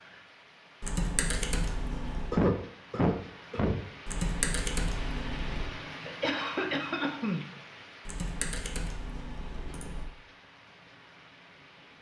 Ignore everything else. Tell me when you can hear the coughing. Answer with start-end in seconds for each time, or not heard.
2.3-3.8, 6.0-7.5.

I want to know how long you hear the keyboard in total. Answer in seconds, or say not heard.
5 s.